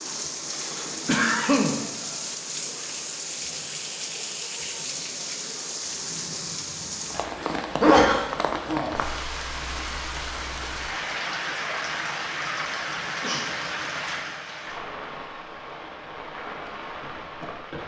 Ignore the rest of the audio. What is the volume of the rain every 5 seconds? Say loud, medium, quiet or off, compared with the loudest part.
loud, loud, loud, medium.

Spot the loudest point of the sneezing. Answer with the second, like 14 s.
8 s.